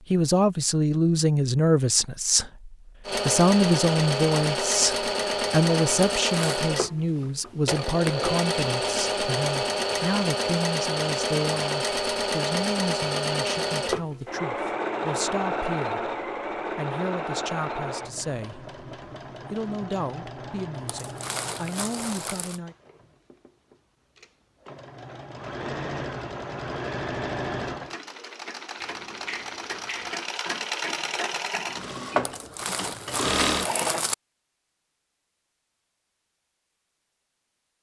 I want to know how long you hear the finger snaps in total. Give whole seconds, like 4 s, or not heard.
2 s.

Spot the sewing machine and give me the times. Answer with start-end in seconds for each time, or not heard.
3.0-34.0.